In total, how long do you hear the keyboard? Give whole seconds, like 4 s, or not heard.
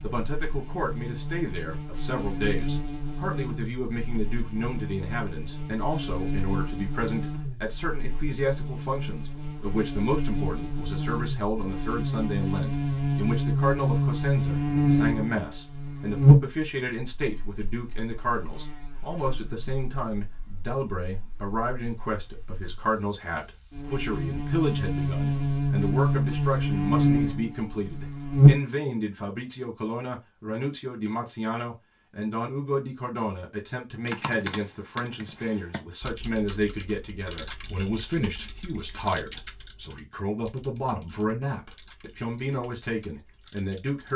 10 s.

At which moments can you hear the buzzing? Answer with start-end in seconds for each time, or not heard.
0.0-28.6.